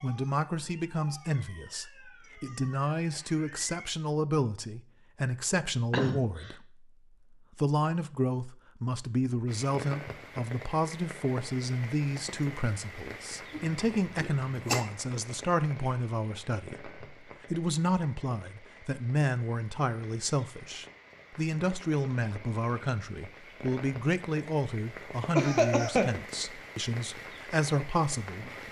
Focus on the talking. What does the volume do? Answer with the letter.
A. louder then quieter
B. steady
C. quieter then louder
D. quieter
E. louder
B.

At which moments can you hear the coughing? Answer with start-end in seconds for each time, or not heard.
5.9-6.5, 13.5-14.8, 25.4-26.1.